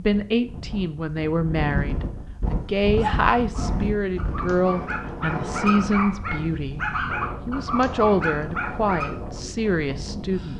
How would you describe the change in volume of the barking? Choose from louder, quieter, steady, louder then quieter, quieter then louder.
louder.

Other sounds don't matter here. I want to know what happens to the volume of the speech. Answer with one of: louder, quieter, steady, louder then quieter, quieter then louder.
steady.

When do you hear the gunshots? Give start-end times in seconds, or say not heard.
not heard.